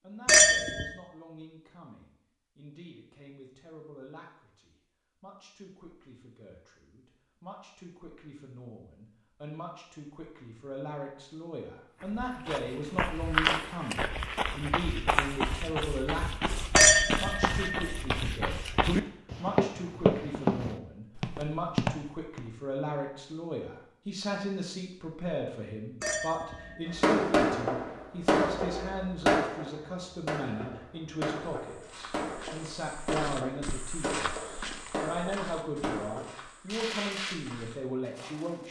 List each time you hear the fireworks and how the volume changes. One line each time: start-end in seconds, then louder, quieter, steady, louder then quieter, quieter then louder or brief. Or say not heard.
26.9-37.4 quieter.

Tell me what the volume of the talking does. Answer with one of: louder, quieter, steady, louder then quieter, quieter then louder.
louder.